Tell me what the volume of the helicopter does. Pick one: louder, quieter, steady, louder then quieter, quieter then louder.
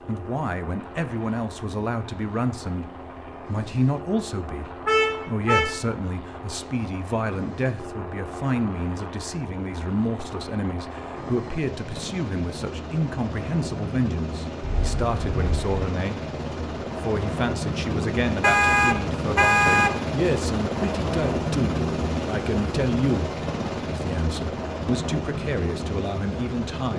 louder.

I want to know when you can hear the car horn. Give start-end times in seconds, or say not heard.
4.8-5.8, 14.6-15.8, 18.4-19.9.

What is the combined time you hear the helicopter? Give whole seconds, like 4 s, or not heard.
27 s.